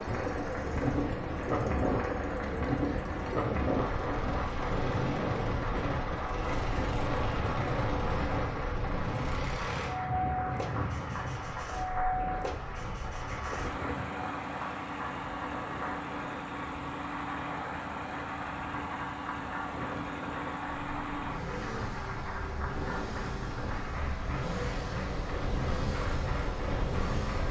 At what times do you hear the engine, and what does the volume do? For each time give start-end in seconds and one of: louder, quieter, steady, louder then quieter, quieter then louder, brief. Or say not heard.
0.0-27.4 steady.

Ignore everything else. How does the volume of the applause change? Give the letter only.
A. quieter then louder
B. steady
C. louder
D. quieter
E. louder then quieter
B.